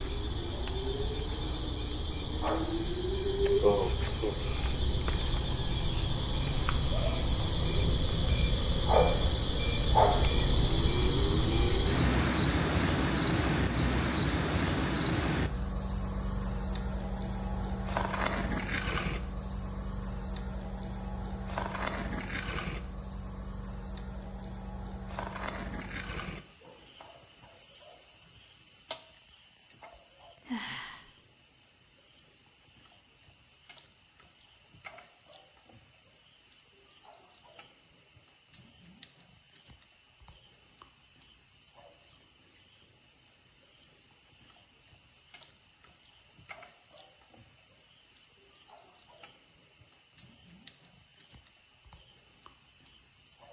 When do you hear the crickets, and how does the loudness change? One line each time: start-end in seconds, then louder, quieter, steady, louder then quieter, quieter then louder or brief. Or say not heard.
0.0-53.4 quieter.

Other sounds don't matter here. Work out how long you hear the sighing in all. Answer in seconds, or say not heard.
2 s.